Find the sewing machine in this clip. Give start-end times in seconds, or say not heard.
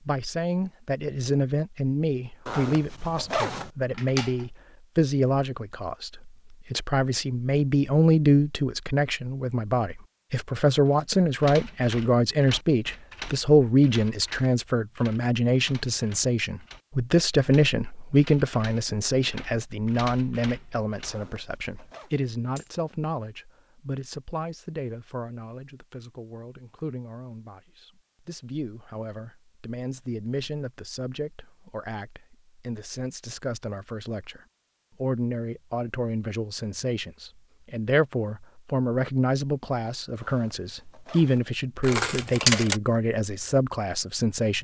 not heard.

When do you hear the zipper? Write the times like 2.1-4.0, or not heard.
2.5-3.7, 21.1-22.1, 40.2-41.5.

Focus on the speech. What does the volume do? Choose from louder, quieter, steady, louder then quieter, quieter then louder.
quieter then louder.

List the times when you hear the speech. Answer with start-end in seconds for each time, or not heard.
0.0-34.4, 35.0-44.5.